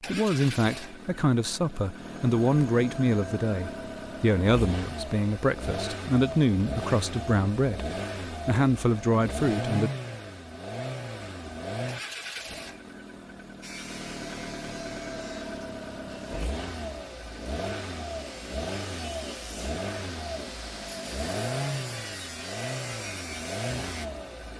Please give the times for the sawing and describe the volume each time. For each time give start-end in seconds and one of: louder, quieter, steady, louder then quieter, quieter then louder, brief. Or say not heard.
13.6-24.1 quieter then louder.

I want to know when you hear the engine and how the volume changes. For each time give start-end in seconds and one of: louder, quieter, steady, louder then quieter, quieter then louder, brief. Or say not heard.
0.0-24.5 steady.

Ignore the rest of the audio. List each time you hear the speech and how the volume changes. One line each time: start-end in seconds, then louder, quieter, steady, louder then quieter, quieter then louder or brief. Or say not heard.
0.1-9.9 steady.